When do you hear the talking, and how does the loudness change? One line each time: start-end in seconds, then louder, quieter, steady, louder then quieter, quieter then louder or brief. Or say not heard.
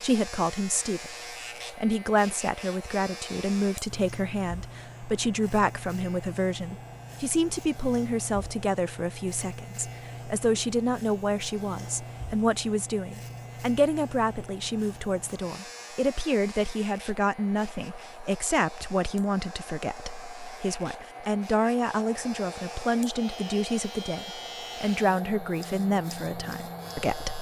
0.0-27.3 steady.